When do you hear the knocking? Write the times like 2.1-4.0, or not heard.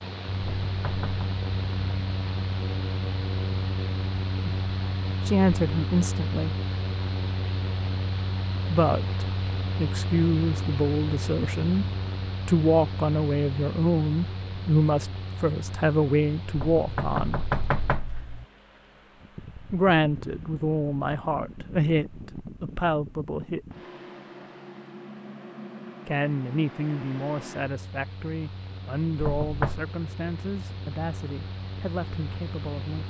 0.4-1.4, 16.6-18.4, 29.2-29.8.